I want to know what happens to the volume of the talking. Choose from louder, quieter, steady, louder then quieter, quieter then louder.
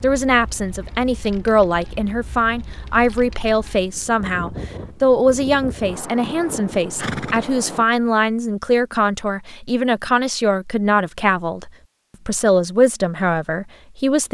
steady.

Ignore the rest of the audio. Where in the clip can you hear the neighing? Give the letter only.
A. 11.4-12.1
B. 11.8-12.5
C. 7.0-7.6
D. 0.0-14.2
C.